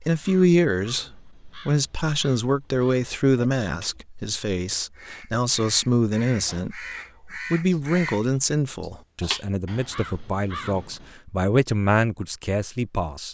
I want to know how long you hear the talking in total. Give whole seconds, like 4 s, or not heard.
13 s.